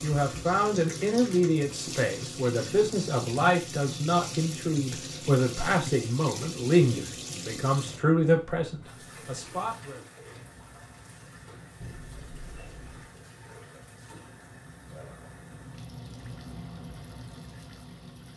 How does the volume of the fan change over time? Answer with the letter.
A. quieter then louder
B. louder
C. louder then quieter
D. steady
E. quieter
B.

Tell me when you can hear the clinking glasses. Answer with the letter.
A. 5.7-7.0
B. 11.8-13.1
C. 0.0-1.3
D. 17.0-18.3
B.